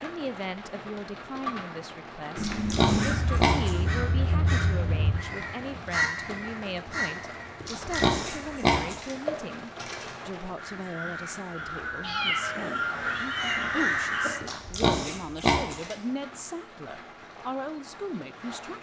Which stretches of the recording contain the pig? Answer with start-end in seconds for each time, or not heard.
2.4-3.7, 7.6-9.2, 14.4-15.9.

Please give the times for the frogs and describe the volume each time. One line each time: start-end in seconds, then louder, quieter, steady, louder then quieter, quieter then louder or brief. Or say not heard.
not heard.